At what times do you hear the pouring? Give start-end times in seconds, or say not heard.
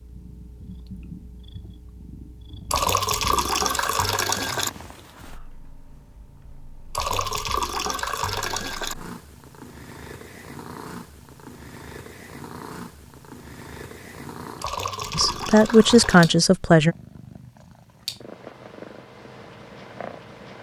2.7-4.7, 6.9-8.9, 14.6-16.4.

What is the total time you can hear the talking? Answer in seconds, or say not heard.
2 s.